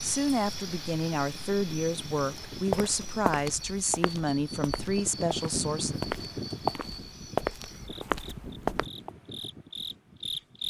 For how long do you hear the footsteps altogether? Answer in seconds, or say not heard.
7 s.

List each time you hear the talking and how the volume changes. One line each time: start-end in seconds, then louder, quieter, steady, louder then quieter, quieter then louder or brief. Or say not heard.
0.0-6.0 steady.